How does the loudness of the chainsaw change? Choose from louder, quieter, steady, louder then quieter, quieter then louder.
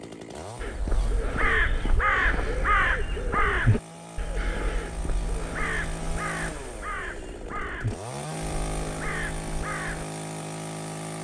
louder.